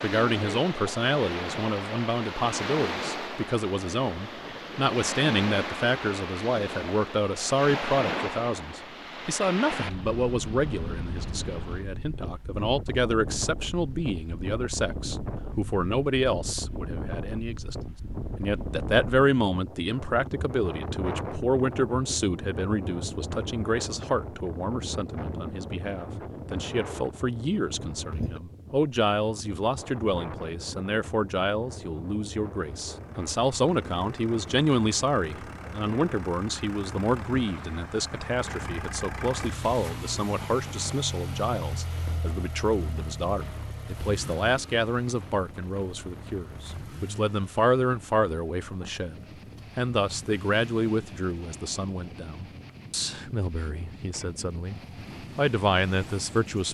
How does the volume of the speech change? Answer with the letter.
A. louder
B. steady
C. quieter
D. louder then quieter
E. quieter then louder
B.